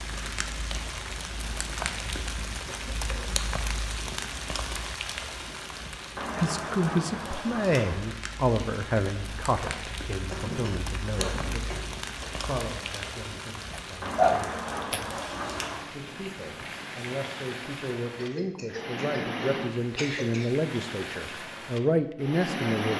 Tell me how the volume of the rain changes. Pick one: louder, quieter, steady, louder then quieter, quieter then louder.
steady.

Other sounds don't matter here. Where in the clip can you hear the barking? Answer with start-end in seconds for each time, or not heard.
13.7-15.1.